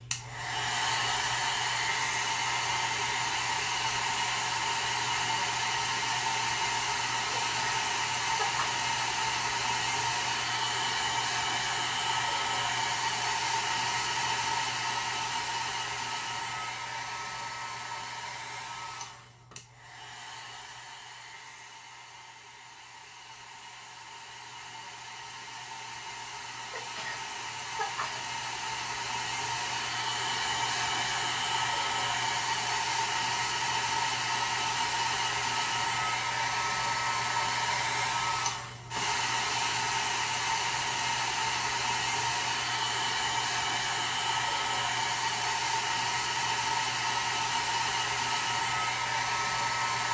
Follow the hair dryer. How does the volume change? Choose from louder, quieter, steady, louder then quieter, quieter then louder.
quieter then louder.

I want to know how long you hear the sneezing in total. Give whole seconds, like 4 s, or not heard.
3 s.